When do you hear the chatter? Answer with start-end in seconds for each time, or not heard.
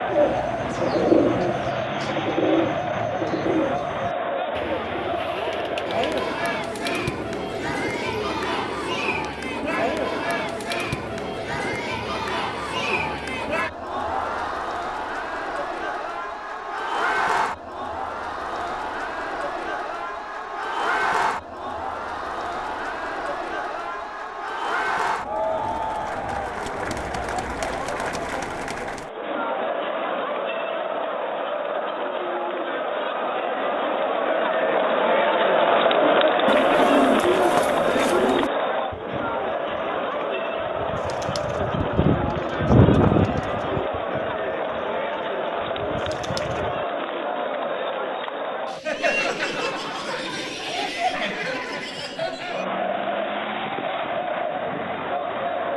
0.0-55.7.